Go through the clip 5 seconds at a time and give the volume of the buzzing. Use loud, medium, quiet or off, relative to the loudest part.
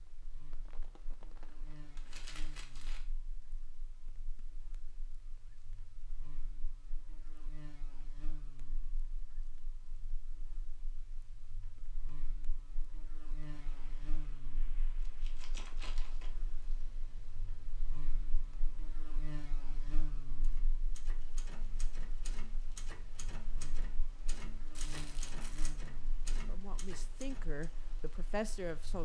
medium, medium, loud, loud, loud, loud.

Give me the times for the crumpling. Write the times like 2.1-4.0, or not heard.
1.9-3.0, 15.0-16.8, 24.8-25.7.